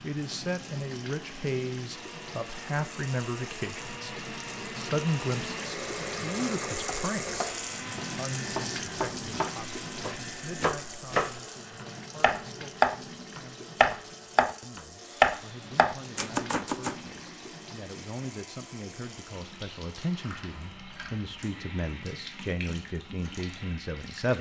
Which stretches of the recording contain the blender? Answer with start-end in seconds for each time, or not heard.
0.0-24.2.